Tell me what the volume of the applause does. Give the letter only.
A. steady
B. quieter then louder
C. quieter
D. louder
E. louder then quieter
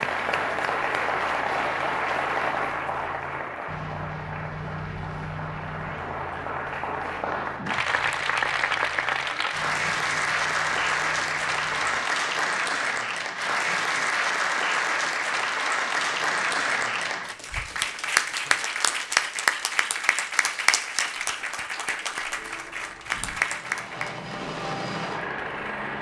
A.